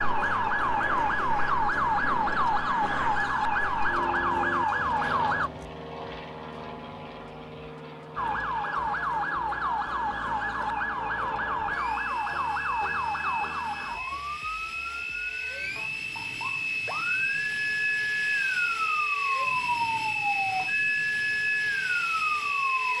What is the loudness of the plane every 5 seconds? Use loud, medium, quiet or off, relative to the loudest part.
medium, medium, medium, loud, loud.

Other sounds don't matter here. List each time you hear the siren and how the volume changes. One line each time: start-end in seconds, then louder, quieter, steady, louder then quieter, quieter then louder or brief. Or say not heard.
0.0-5.5 steady
8.2-22.9 quieter then louder.